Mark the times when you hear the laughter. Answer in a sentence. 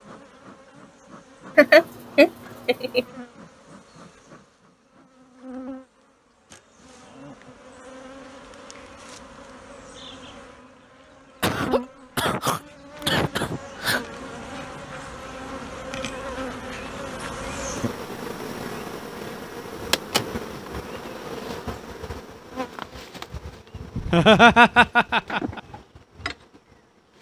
You can hear the laughter from 1.6 to 3.0 s, from 11.4 to 14.1 s and from 23.9 to 25.6 s.